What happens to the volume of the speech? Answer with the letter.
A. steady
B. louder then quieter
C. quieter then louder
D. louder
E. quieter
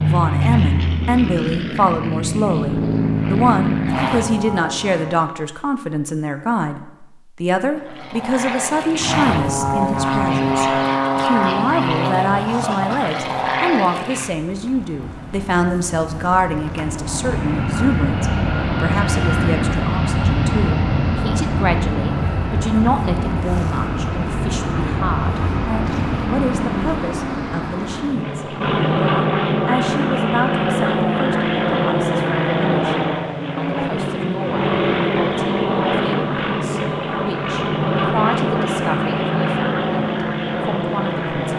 E.